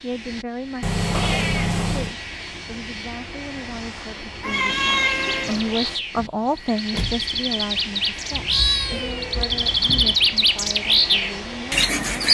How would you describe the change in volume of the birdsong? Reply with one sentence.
The volume of the birdsong goes up.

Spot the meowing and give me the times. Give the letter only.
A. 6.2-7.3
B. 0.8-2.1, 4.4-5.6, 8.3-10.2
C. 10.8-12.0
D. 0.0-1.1
B.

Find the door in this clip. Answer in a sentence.
The door can be heard from 6.2 to 7.3 s.